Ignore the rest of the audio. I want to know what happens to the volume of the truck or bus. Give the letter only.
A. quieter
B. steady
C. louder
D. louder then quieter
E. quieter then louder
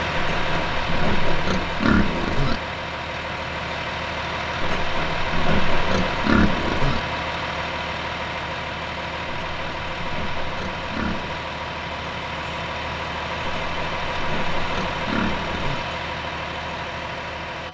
B.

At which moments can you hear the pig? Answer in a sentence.
The pig can be heard from 0.1 to 2.6 s, from 4.6 to 7.0 s, from 9.2 to 11.4 s and from 13.4 to 15.8 s.